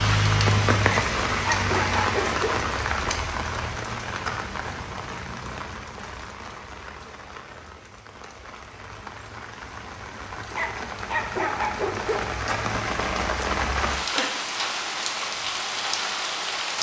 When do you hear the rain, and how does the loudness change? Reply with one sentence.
The rain can be heard from 0.0 to 16.7 s, getting quieter then louder.